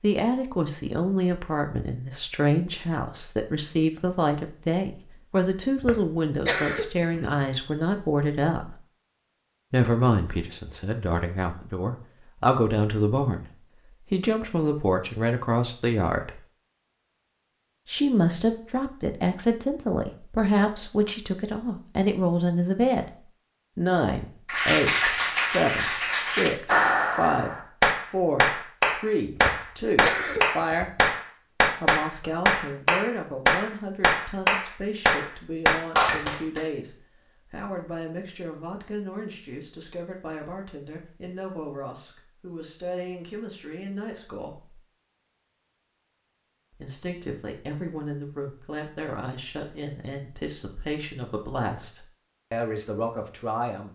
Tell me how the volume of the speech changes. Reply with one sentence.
The loudness of the speech goes down.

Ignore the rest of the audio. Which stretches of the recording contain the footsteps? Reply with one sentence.
The footsteps can't be heard in this clip.